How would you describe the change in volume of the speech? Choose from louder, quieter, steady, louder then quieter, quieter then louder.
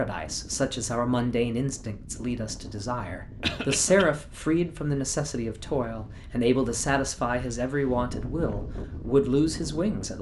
steady.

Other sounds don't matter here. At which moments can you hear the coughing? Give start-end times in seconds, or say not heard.
3.4-4.0.